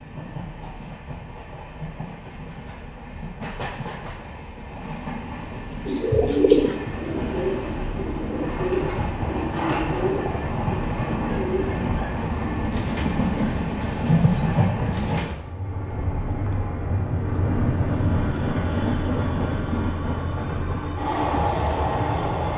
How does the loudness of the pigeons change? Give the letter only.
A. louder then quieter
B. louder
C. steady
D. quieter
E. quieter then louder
D.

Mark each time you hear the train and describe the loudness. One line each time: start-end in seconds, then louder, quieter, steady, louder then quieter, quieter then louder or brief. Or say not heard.
0.0-22.5 louder.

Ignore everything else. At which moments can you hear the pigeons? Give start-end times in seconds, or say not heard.
5.8-15.3.